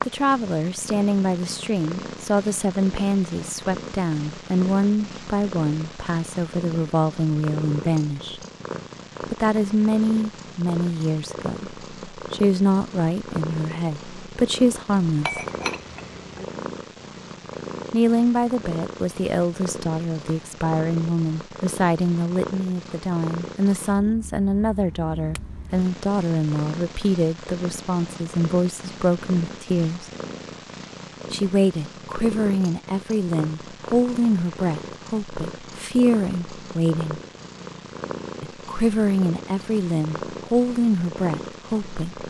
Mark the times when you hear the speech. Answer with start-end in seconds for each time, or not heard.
0.1-8.4, 9.3-15.4, 17.9-30.1, 31.3-37.2, 38.4-42.2.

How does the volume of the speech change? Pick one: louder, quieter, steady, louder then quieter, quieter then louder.
steady.